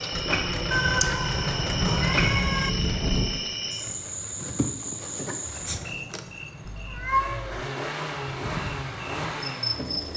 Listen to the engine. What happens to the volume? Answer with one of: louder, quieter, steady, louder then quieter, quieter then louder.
quieter then louder.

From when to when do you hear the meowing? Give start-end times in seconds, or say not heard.
0.7-2.7, 6.7-7.6.